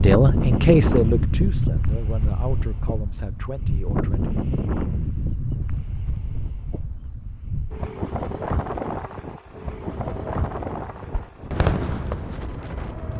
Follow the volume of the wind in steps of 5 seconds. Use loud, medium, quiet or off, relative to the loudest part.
loud, medium, medium.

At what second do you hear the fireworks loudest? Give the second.
12 s.